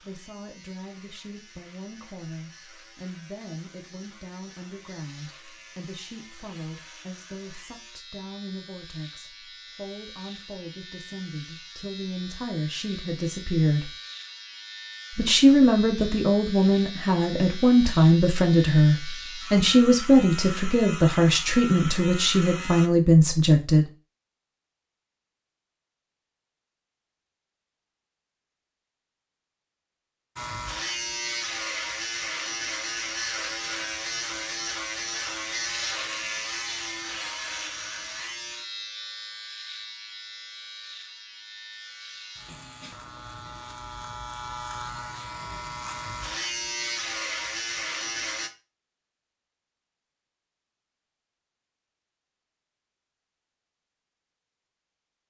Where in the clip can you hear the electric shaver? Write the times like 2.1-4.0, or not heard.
0.0-22.9, 30.4-48.5.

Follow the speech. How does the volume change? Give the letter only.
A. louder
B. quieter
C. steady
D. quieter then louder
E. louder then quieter
A.